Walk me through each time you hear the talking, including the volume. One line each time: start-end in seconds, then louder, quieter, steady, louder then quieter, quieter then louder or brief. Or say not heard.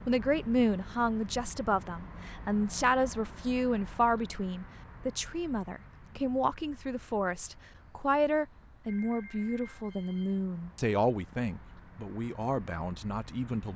0.1-13.7 steady.